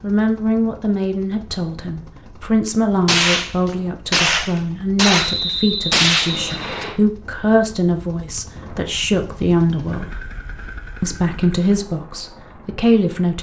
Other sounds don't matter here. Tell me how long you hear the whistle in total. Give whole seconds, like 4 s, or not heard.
2 s.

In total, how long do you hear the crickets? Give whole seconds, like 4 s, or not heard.
not heard.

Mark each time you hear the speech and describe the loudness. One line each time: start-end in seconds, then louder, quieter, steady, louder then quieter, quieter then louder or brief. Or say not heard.
0.0-10.1 steady
11.0-13.3 brief.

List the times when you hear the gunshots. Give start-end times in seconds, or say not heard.
3.0-6.8.